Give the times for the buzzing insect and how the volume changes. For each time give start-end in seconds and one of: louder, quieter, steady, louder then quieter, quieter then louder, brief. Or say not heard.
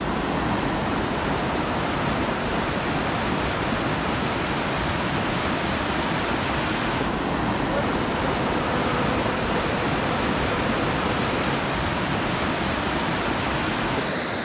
7.7-11.7 steady.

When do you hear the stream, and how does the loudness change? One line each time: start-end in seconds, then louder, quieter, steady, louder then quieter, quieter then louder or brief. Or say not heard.
0.0-14.3 steady.